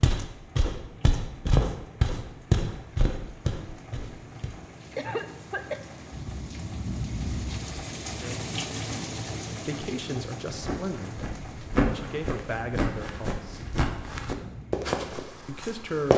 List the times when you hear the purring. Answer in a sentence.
The purring can't be heard in this clip.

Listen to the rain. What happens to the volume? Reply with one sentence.
The volume of the rain goes up, then down.